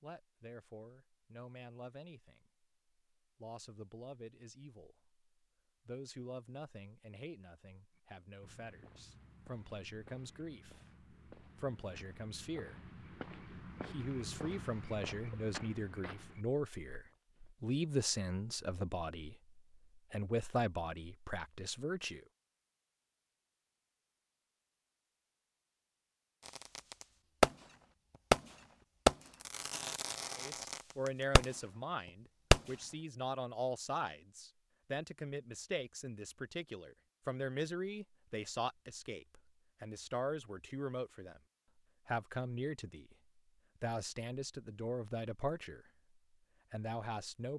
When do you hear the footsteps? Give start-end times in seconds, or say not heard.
8.0-17.6.